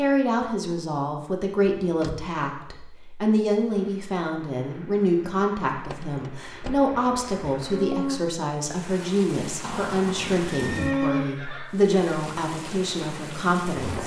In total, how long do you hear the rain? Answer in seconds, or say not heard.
10 s.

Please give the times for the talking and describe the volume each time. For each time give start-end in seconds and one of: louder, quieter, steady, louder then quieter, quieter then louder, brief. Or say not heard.
0.0-14.0 steady.